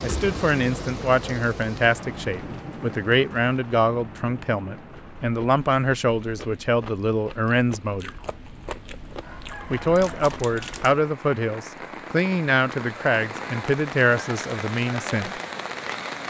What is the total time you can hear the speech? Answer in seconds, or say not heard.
14 s.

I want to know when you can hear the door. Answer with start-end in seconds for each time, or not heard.
not heard.